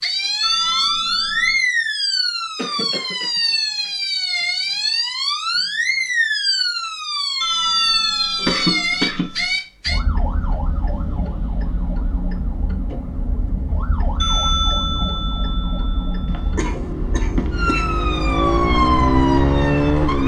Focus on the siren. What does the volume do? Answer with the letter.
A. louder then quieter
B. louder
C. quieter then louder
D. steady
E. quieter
C.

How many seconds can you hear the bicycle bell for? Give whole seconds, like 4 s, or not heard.
6 s.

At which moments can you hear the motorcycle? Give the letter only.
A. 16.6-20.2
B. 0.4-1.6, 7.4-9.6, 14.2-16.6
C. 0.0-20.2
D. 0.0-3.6
A.